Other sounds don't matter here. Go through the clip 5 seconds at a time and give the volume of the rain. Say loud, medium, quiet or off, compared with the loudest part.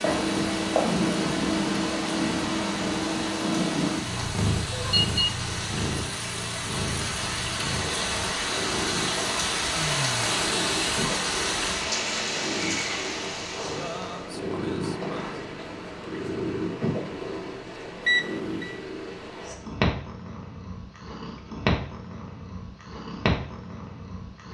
medium, loud, loud, off, off.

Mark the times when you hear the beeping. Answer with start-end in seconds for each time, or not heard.
4.7-5.3, 18.1-18.8.